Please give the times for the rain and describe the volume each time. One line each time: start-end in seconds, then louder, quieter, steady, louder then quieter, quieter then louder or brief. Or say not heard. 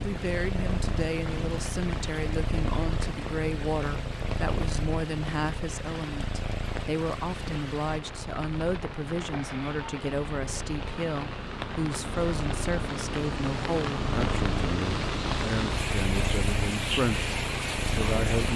0.0-18.5 louder.